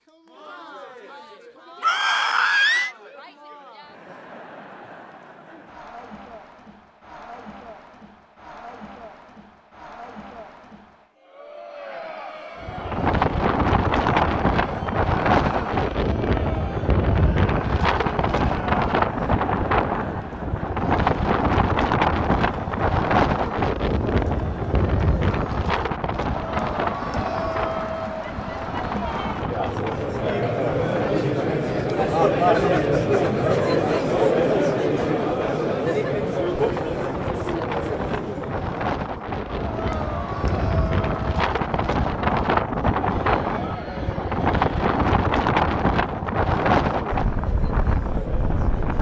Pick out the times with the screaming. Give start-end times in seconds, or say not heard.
1.8-3.0.